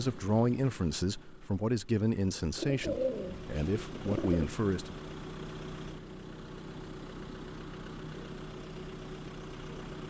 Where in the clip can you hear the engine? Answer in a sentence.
You can hear the engine from 0.0 to 10.0 s.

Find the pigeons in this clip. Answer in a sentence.
The pigeons can be heard from 2.5 to 4.5 s.